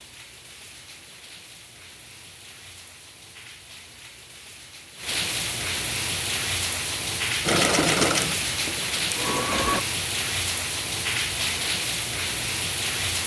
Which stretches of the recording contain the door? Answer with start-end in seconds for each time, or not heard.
not heard.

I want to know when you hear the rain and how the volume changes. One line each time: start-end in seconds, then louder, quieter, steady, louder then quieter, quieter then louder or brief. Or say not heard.
0.0-13.2 louder.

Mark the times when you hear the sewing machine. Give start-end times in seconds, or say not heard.
7.5-9.8.